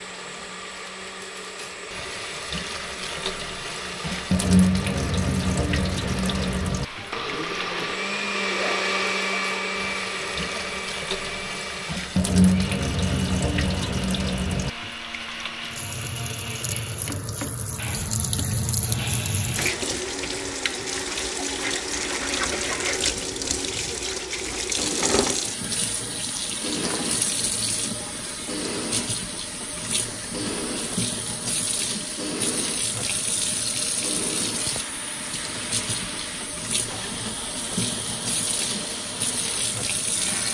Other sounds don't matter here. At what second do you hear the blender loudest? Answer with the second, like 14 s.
9 s.